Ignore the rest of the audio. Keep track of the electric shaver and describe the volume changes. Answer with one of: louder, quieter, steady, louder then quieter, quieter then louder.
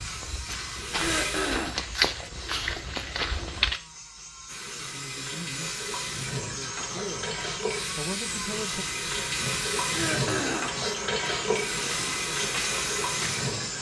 louder.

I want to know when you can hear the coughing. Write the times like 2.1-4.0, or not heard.
0.9-1.9, 9.8-10.8.